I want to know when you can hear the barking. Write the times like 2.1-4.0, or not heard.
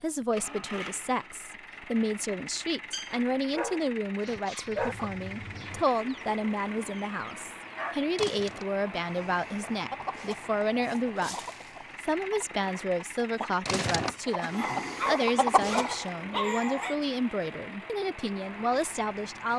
2.9-5.0, 14.6-16.9.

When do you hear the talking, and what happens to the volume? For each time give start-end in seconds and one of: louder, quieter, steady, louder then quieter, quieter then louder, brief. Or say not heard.
0.0-11.3 steady
12.0-19.5 steady.